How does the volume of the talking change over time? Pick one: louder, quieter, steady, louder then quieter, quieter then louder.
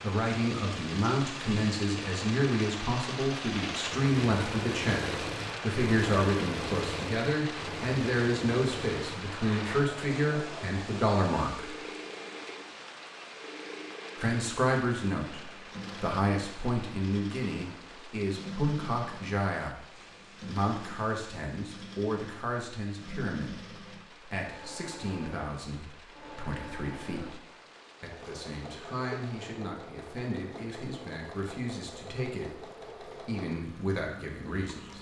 quieter.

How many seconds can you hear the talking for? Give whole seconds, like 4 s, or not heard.
31 s.